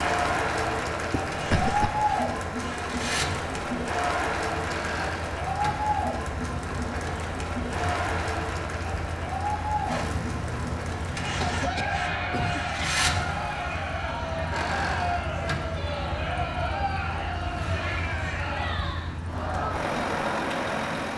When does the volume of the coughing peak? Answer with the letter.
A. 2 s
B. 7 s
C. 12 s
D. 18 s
A.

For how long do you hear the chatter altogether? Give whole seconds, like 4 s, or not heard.
21 s.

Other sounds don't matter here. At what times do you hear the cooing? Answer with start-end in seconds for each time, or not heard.
not heard.